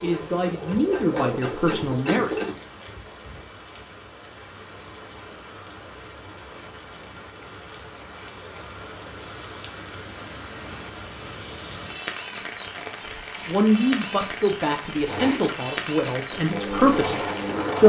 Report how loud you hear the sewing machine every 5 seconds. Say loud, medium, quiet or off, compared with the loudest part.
loud, off, off, loud.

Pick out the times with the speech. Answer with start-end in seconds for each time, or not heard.
0.0-2.4, 13.4-17.8.